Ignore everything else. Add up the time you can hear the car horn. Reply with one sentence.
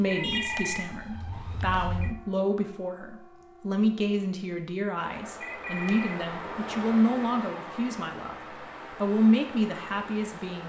You can hear the car horn for 2 seconds altogether.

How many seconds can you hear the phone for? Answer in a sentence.
The phone can be heard for 3 seconds in total.